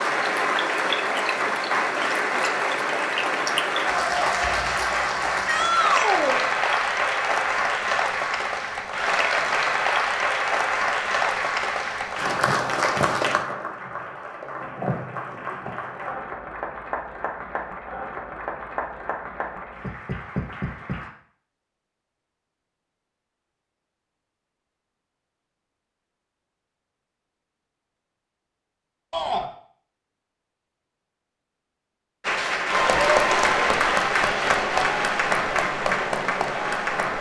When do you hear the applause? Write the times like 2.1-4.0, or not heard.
0.0-21.1, 32.2-37.1.